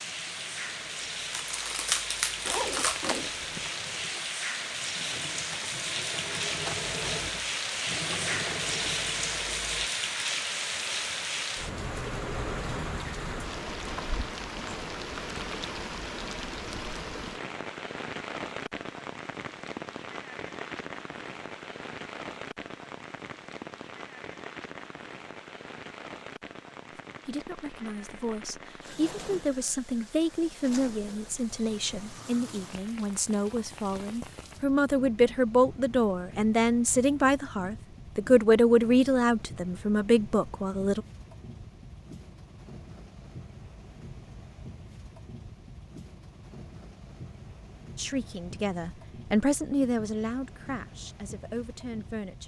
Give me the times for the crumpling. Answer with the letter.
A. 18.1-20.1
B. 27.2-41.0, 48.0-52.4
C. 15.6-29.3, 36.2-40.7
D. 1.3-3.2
D.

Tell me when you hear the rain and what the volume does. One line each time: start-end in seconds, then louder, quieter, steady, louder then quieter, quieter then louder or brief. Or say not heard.
0.0-52.4 quieter.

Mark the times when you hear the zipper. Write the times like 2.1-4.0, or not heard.
2.5-3.7.